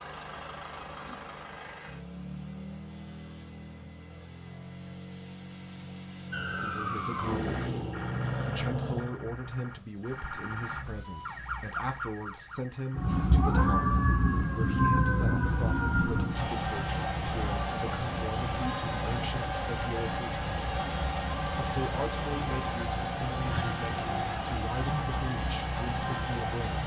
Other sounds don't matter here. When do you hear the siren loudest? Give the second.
14 s.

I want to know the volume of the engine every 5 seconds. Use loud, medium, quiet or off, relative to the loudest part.
medium, medium, off, loud, loud, loud.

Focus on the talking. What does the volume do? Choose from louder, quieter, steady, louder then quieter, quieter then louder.
steady.